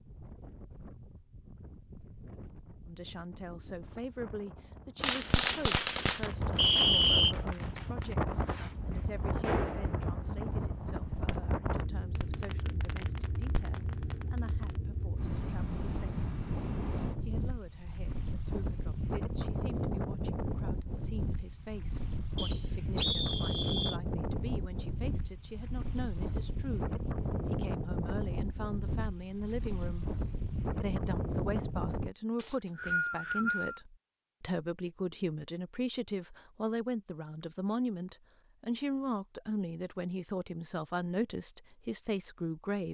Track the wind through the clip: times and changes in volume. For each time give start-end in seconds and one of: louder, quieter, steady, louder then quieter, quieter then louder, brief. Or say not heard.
0.0-32.1 louder.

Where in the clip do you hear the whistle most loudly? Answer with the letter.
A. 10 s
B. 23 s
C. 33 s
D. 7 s
D.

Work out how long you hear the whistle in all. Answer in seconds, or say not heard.
4 s.